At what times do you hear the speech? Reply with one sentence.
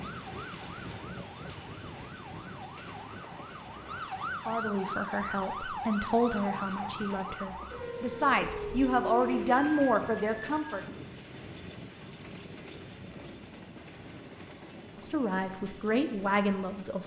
You can hear the speech from 4.5 to 10.8 s and from 14.9 to 17.0 s.